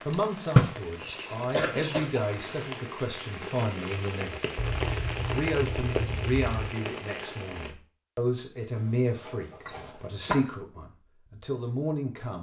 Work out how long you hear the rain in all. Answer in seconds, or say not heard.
8 s.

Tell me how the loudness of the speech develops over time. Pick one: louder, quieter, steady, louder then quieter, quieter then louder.
steady.